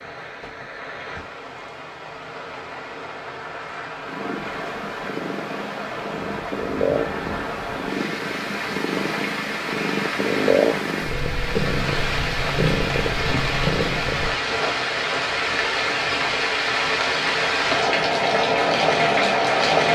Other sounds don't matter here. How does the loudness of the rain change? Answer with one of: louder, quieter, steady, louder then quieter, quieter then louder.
louder.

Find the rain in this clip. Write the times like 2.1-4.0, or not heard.
0.0-19.9.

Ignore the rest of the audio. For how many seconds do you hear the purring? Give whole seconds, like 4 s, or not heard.
10 s.